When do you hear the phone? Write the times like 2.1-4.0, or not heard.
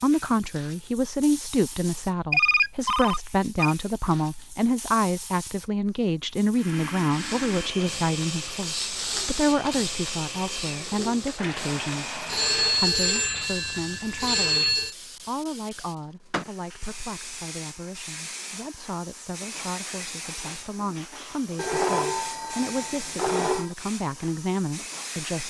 2.3-3.8, 12.2-14.9, 21.6-23.8.